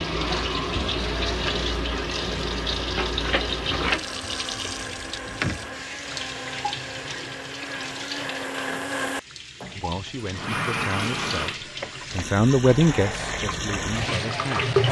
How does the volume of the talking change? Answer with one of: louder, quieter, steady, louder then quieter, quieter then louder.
louder then quieter.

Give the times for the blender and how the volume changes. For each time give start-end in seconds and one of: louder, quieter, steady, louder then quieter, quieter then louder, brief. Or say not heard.
0.2-14.8 louder then quieter.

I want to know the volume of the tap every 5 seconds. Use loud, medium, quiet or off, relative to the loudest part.
loud, medium, loud.